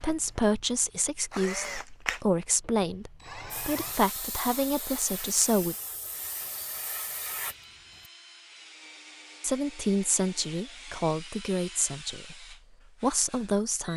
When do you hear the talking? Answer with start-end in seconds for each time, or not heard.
0.0-5.8, 9.4-13.9.